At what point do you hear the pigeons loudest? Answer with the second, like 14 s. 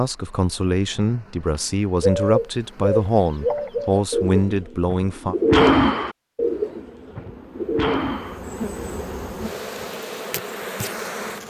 6 s.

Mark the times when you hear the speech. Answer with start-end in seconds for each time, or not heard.
0.0-5.3.